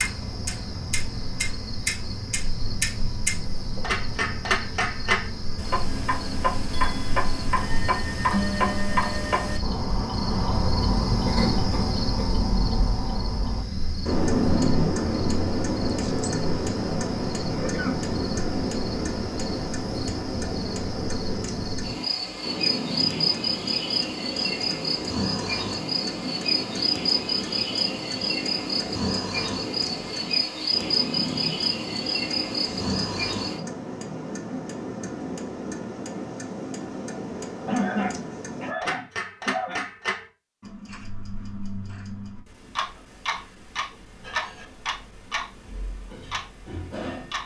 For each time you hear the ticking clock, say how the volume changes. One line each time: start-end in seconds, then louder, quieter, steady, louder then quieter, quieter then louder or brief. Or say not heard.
0.0-47.4 quieter.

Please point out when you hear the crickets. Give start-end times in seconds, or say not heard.
0.0-33.6.